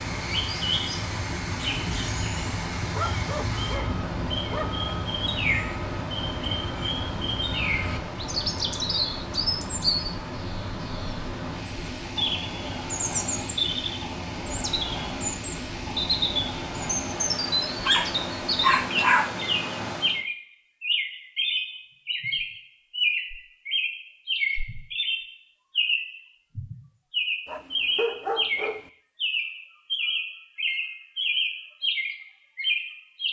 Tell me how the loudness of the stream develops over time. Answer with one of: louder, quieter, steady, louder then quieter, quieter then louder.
steady.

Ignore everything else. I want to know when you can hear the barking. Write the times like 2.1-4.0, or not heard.
2.9-4.8, 17.9-19.4, 27.4-28.9.